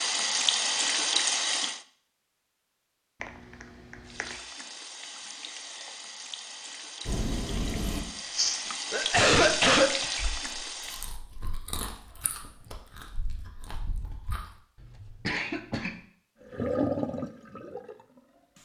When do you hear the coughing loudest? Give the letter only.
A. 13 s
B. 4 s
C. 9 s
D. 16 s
C.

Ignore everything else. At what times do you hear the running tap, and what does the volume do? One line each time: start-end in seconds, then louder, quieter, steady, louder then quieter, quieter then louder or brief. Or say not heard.
0.0-1.8 brief
4.0-11.2 louder
16.4-18.6 brief.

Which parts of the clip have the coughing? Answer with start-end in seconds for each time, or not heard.
3.2-4.3, 8.9-10.1, 14.8-16.0.